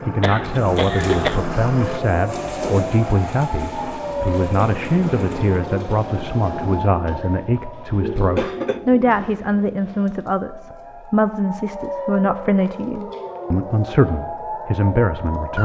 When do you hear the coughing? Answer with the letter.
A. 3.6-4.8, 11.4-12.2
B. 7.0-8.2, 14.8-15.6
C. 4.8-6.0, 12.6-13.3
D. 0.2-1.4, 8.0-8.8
D.